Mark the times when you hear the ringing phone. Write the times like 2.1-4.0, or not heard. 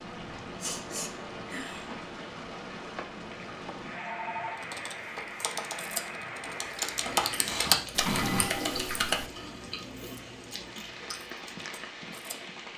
4.0-4.7, 8.2-8.8.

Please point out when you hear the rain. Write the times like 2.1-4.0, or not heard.
0.0-12.7.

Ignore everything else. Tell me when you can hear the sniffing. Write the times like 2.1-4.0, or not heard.
0.6-1.9, 7.4-8.5.